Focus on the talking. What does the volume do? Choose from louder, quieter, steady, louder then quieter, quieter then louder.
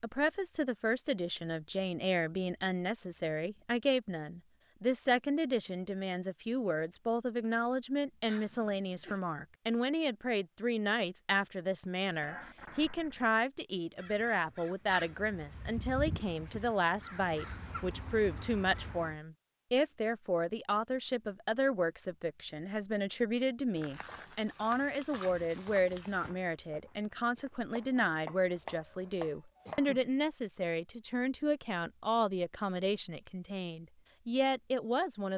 steady.